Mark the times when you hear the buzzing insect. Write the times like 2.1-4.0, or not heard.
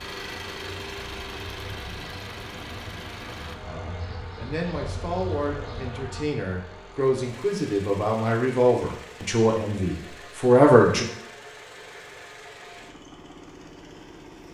0.0-6.2.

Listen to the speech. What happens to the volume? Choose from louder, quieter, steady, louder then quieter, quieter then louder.
louder.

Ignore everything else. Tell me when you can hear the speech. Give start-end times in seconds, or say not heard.
3.6-11.1.